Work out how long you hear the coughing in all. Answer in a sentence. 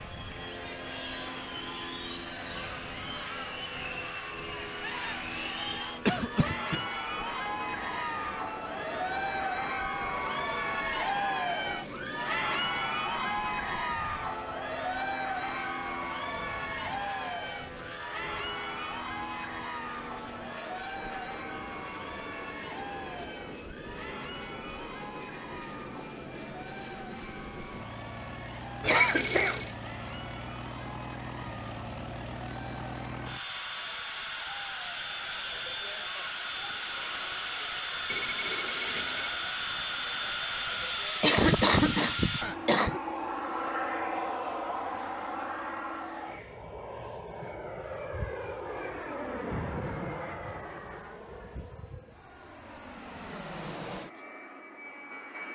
You can hear the coughing for 4 seconds altogether.